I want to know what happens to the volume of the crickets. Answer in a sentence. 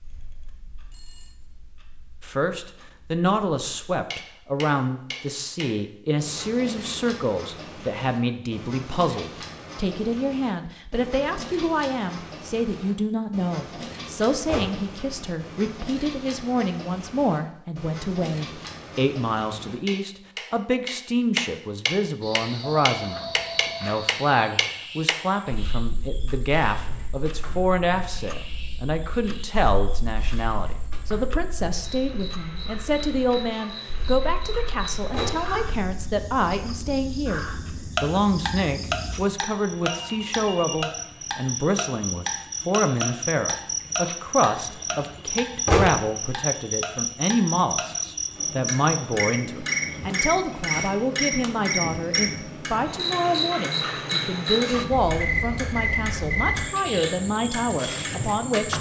The volume of the crickets goes up.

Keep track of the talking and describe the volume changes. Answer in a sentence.
The volume of the talking stays about the same.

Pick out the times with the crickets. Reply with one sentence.
You can hear the crickets from 22.2 to 58.7 s.